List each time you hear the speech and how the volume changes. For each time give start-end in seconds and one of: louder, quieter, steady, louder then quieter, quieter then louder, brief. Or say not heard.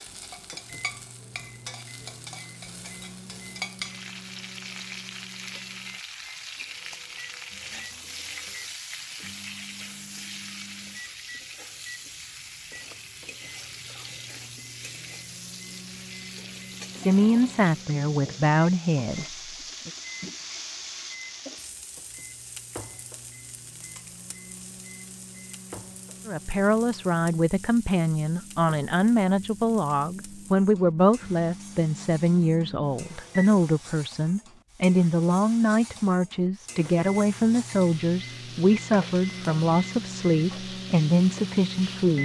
16.9-19.9 brief
26.2-42.1 steady.